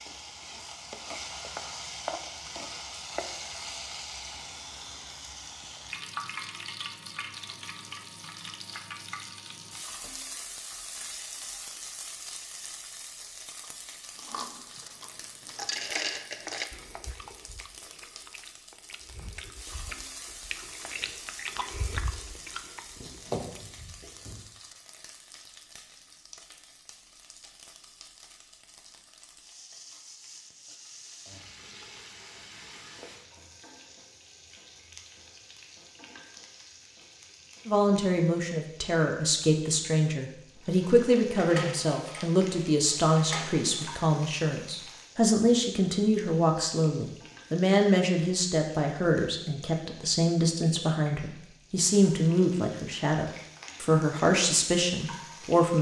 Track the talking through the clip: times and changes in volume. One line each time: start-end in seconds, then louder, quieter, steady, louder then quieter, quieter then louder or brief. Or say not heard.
37.6-55.7 steady.